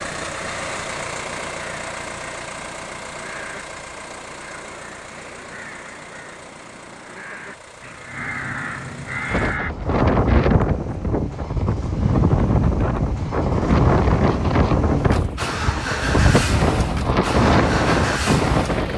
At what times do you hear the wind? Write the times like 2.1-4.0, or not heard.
9.3-18.9.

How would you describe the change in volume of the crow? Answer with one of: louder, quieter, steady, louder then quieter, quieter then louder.
louder.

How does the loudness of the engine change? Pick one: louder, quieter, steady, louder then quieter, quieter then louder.
quieter then louder.